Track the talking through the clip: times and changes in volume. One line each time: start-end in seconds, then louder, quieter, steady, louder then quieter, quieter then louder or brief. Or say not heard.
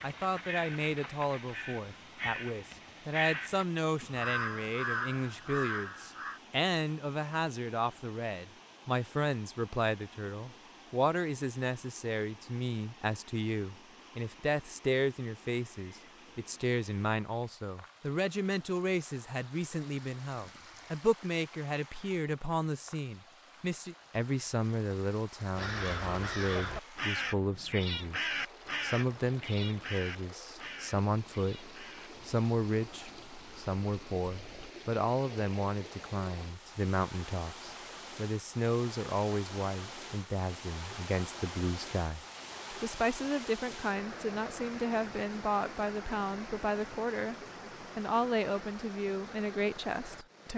0.0-47.4 steady
48.0-50.5 brief.